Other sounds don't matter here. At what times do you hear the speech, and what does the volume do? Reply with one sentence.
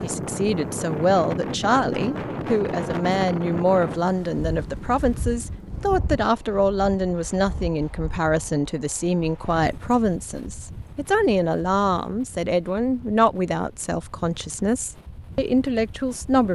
The speech can be heard from 0.0 to 16.5 s, at a steady volume.